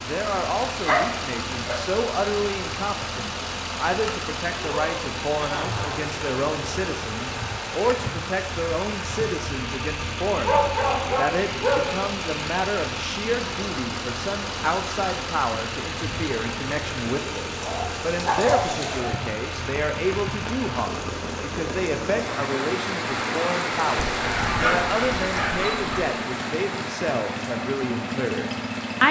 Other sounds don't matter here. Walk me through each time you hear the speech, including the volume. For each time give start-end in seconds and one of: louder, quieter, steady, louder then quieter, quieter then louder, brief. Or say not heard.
0.0-29.0 steady.